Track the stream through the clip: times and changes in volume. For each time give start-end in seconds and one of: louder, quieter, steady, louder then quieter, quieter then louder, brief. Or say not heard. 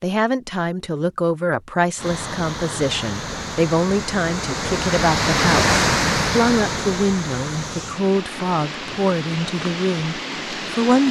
1.9-11.0 louder then quieter.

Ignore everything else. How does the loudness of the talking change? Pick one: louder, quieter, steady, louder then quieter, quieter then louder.
steady.